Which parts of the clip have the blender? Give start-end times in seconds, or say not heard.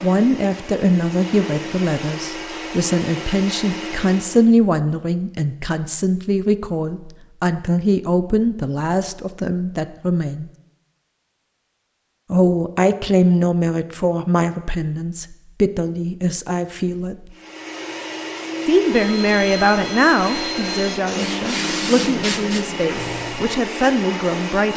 0.0-4.5, 17.3-24.7.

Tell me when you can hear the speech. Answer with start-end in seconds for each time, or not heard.
0.0-10.5, 12.3-17.1, 18.6-24.7.